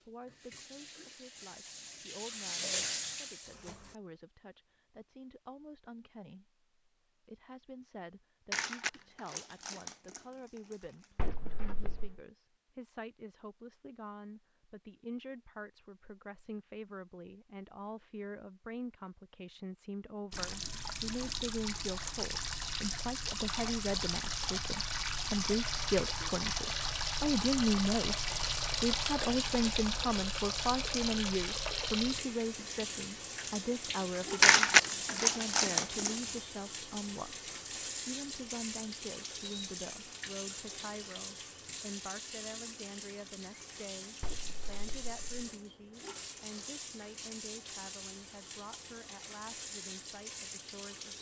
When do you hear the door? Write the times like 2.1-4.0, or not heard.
11.2-12.2, 44.2-45.2.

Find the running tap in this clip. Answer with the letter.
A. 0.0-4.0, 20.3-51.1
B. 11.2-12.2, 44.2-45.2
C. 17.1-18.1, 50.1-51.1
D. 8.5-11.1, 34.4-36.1
A.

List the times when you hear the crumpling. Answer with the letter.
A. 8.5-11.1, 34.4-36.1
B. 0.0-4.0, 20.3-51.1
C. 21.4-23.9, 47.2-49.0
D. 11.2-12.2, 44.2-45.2
A.